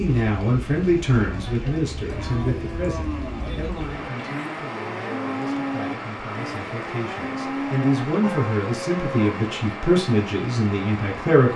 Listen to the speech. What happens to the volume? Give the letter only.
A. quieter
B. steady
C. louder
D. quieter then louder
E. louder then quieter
D.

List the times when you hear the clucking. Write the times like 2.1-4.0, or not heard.
not heard.